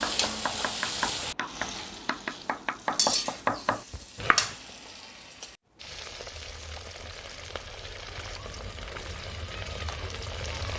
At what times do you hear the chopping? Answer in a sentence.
You can hear the chopping from 0.0 to 4.5 s.